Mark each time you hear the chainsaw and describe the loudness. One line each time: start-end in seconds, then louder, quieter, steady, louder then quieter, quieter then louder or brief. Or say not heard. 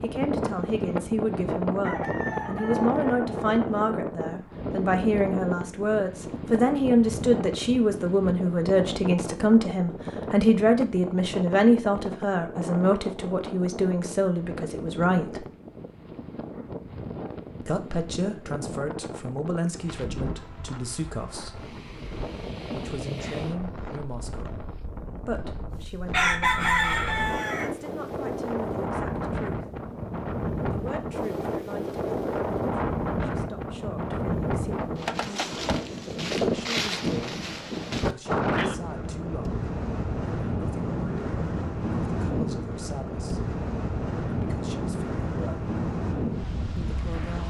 not heard.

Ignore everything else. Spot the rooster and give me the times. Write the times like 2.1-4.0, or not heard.
1.8-3.8, 25.8-27.7.